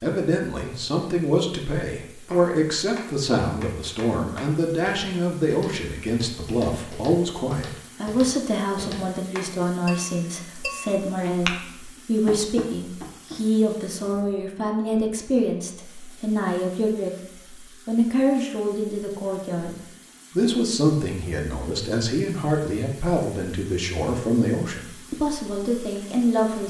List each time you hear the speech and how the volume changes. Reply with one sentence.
The speech can be heard from 0.0 to 26.6 s, at a steady volume.